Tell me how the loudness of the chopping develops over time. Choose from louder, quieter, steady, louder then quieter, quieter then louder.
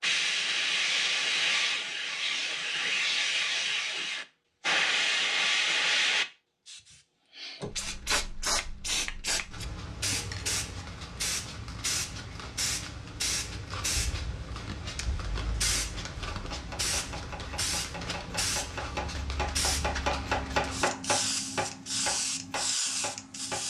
louder then quieter.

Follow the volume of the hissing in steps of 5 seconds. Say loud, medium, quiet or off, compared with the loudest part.
loud, loud, medium, medium, medium.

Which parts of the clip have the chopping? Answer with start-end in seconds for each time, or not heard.
16.1-23.6.